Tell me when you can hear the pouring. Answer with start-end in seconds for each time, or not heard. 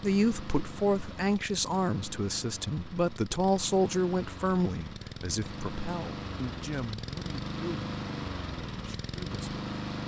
not heard.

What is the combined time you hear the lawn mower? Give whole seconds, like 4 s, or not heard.
10 s.